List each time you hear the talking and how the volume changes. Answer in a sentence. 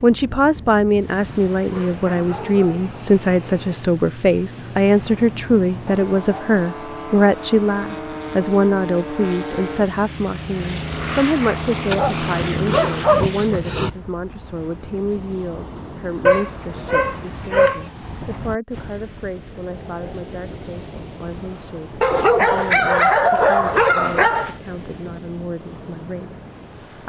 You can hear the talking from 0.0 to 27.0 s, getting quieter.